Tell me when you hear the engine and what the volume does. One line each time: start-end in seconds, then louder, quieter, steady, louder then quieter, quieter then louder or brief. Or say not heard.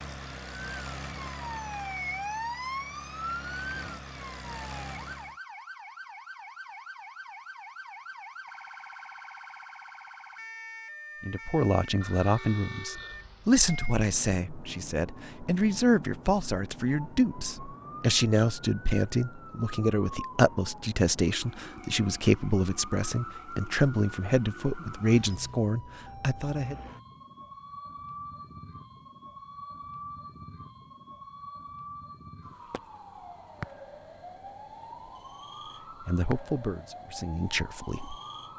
0.0-5.3 quieter then louder.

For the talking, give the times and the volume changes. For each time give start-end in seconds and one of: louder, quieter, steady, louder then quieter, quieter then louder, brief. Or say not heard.
11.2-26.8 steady
36.0-38.1 brief.